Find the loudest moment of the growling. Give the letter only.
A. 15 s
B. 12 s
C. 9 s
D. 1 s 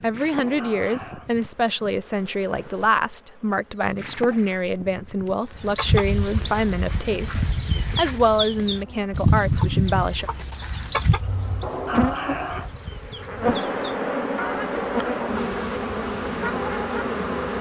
B.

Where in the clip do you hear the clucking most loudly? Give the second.
9 s.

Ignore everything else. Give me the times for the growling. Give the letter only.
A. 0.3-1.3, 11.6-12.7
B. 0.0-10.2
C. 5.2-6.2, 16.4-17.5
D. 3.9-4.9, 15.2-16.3
A.